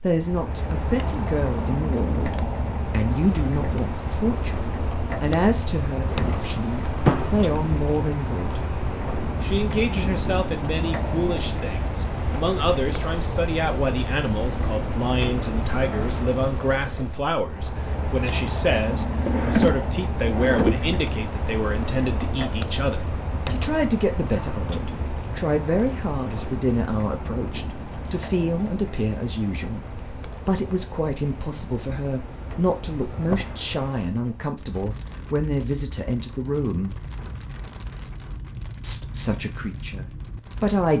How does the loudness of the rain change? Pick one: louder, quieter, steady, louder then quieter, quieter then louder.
quieter.